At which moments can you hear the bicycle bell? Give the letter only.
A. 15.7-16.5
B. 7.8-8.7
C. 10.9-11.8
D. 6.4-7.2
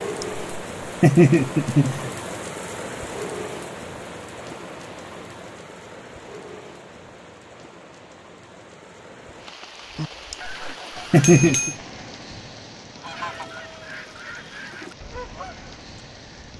C.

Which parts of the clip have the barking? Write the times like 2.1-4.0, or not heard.
not heard.